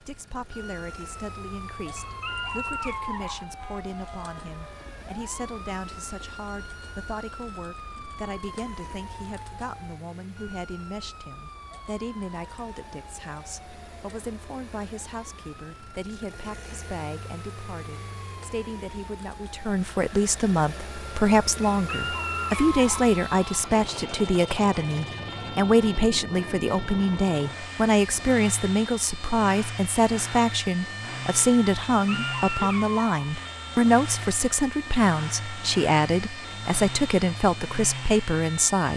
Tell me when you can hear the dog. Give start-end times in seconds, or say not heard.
1.9-3.5, 21.8-23.1, 31.9-33.3.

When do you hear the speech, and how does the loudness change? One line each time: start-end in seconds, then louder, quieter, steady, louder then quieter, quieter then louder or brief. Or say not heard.
0.0-38.9 louder.